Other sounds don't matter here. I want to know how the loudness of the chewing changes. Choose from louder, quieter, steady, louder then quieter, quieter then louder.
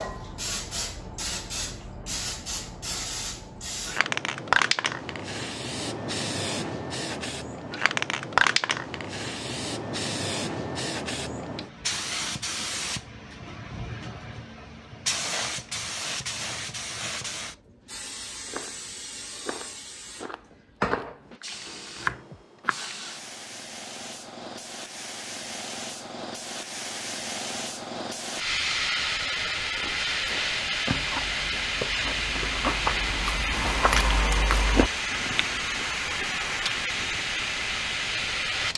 louder then quieter.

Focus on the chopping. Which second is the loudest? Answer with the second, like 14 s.
22 s.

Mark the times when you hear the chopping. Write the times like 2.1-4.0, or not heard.
18.4-21.2, 21.9-22.8.